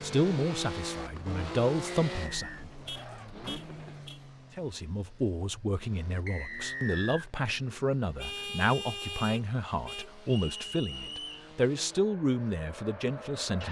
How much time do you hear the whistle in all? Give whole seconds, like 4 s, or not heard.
3 s.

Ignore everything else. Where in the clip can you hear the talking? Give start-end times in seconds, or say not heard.
0.0-2.7, 4.5-13.6.